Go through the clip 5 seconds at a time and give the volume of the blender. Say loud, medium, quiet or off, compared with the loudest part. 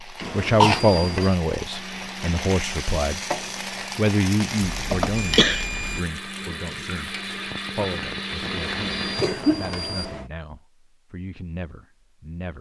medium, loud, off.